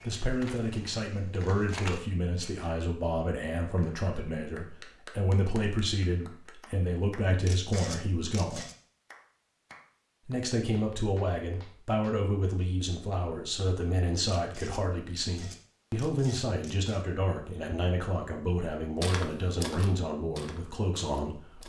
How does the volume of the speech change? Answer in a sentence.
The volume of the speech stays about the same.